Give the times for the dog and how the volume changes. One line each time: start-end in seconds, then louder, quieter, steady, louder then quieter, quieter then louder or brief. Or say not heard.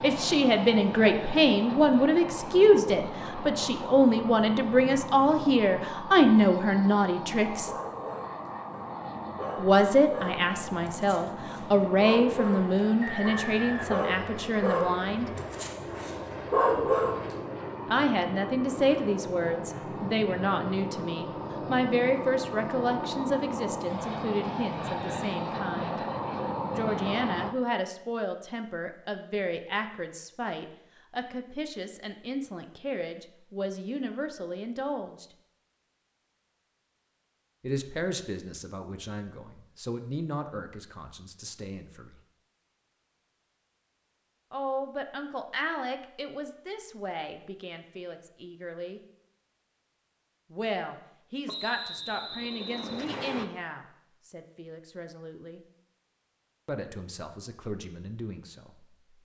7.5-17.4 louder.